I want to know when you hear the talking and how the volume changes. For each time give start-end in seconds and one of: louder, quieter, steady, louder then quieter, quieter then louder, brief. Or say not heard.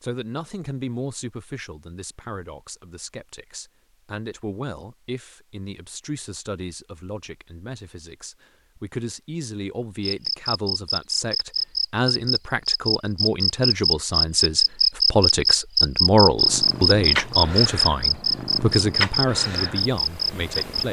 0.0-20.8 louder.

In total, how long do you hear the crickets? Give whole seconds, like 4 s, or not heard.
11 s.